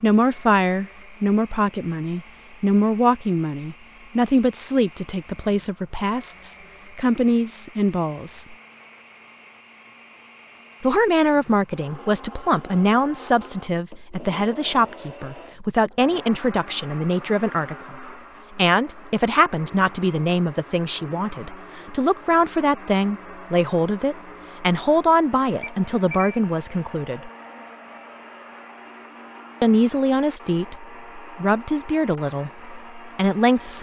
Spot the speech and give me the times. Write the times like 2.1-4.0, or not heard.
0.0-8.6, 10.8-27.3, 29.6-33.7.